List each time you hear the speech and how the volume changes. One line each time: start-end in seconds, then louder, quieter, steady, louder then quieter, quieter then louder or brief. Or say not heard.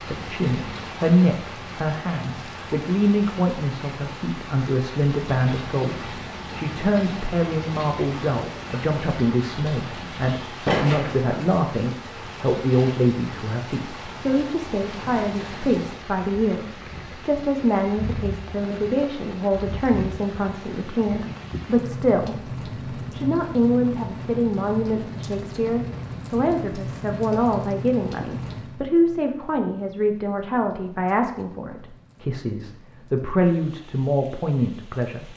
0.1-35.3 steady.